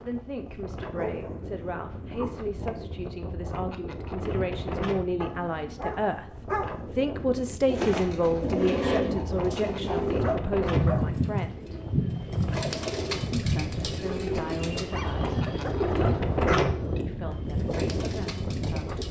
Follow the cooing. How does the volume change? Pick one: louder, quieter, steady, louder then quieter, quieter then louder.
quieter.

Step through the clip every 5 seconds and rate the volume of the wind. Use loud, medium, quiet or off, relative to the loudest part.
medium, medium, medium, loud.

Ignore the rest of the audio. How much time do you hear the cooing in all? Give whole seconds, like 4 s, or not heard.
11 s.